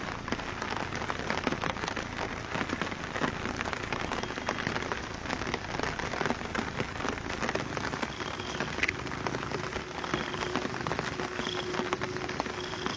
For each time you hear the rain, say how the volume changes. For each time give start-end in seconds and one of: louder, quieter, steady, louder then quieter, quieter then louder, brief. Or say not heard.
0.0-12.9 steady.